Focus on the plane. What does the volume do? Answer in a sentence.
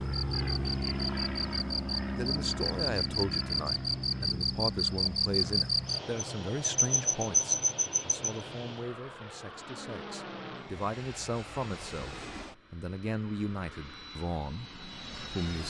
The loudness of the plane goes down.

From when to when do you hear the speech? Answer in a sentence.
The speech can be heard from 2.1 to 15.6 s.